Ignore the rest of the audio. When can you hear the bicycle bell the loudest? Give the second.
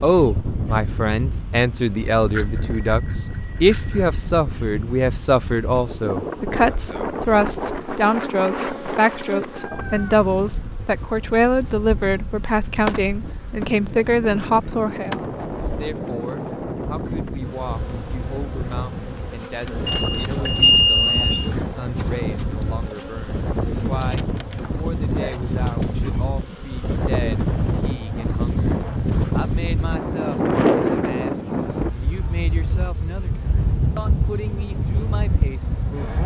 21 s.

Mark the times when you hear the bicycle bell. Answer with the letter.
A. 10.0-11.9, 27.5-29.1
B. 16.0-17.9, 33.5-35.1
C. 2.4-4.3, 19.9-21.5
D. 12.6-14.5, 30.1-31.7
C.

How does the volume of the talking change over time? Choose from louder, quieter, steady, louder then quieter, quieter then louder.
quieter.